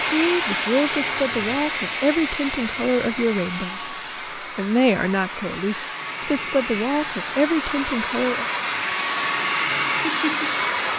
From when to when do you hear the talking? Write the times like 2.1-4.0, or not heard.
0.1-8.4.